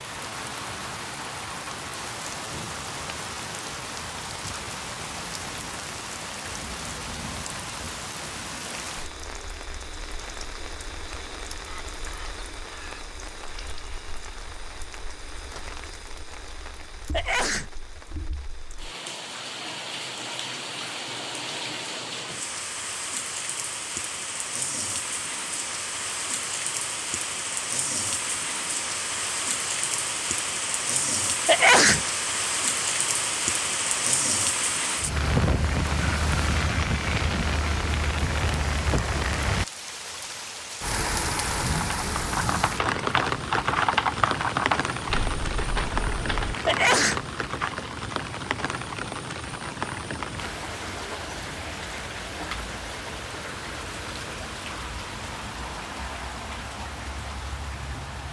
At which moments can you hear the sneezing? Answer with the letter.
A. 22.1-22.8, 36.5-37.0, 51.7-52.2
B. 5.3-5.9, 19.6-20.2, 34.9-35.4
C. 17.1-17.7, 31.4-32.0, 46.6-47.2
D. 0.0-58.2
C.